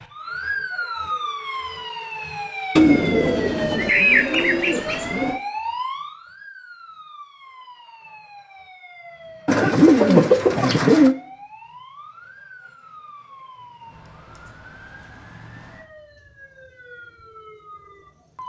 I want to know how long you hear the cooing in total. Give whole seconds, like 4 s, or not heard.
4 s.